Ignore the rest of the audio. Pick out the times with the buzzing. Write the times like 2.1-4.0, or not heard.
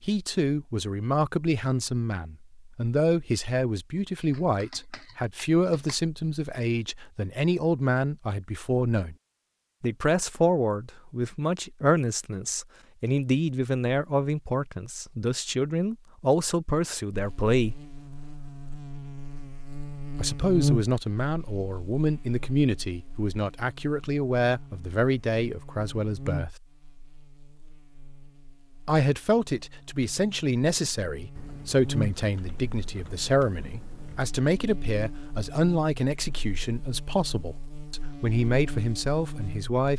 17.1-39.9.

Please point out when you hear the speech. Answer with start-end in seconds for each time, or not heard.
0.0-9.2, 9.8-17.9, 20.1-26.6, 28.9-39.9.